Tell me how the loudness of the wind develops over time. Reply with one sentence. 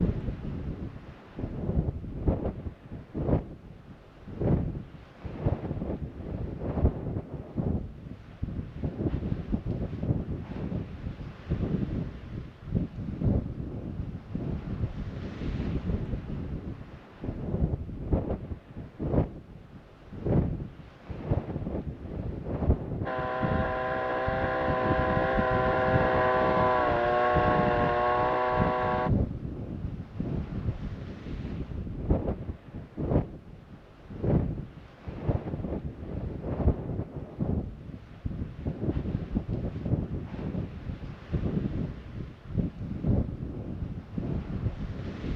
The loudness of the wind stays about the same.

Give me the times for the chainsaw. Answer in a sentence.
The chainsaw can be heard from 23.1 to 29.1 s.